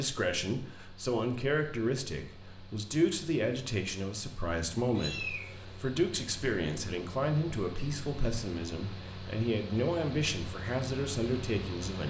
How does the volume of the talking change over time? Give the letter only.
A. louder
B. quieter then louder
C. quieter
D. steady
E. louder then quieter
D.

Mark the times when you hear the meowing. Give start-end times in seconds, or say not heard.
5.0-5.8.